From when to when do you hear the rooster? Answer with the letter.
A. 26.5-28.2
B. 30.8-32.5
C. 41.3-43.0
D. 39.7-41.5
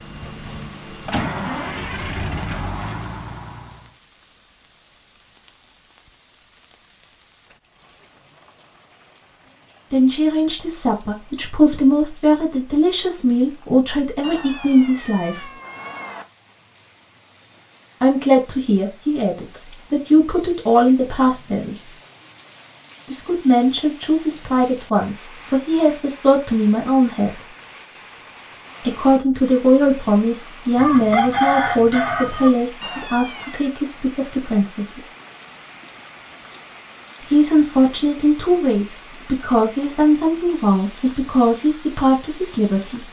B.